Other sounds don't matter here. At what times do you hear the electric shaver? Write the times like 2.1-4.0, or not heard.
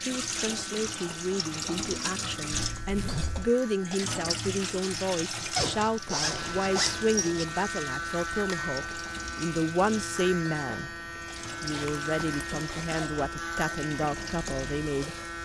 0.0-15.3.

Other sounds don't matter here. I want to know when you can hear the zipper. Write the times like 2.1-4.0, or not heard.
2.8-3.5, 5.5-7.5, 11.7-13.3.